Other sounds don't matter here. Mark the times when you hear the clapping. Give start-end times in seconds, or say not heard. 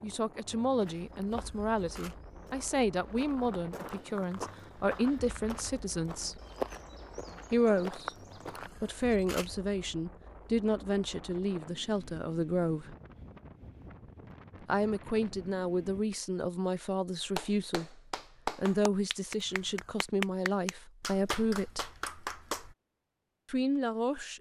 17.1-22.8.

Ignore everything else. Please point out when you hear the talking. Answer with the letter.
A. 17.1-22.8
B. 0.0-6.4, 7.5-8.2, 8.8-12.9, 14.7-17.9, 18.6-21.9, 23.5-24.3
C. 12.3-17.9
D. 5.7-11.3
B.